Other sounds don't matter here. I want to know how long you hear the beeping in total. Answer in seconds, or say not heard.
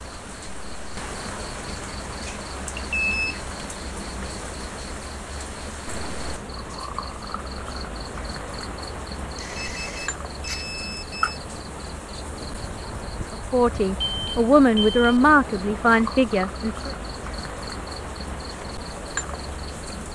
4 s.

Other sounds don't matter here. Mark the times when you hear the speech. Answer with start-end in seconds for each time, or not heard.
13.3-16.9.